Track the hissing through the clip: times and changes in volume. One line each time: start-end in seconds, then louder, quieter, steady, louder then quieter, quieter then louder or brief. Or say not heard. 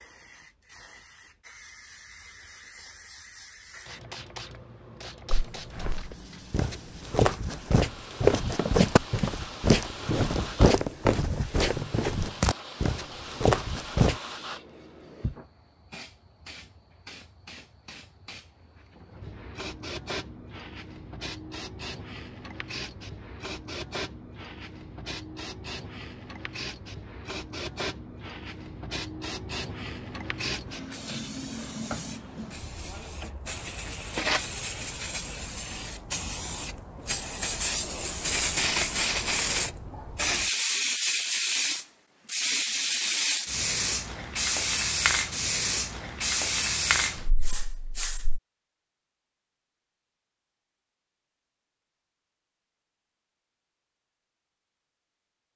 0.0-48.4 louder.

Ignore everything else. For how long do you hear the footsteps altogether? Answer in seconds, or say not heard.
9 s.